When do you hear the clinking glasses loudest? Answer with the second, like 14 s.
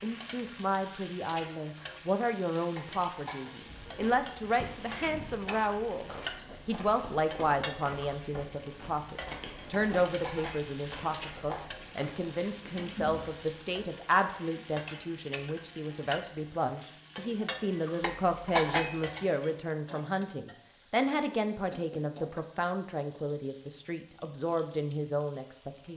19 s.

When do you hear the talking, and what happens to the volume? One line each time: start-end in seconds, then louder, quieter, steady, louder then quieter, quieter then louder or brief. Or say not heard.
0.0-25.9 steady.